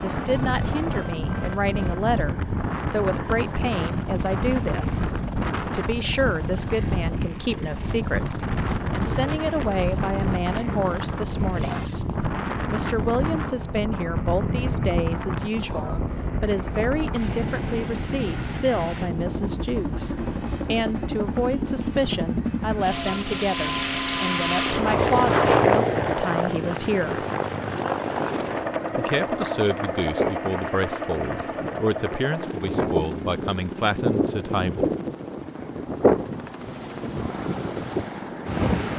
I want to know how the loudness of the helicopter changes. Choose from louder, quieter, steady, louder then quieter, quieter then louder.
louder then quieter.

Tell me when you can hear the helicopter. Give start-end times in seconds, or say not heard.
0.0-38.7.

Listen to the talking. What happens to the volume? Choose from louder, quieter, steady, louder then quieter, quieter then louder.
steady.